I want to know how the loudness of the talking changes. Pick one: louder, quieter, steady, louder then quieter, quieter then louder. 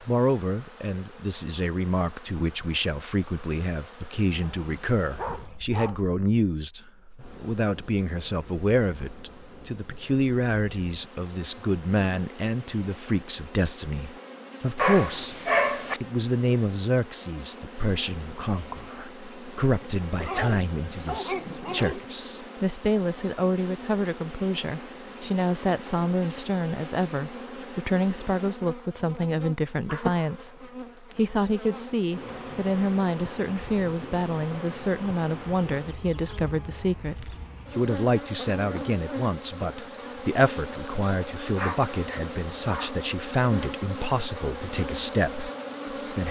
steady.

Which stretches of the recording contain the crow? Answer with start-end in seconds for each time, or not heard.
not heard.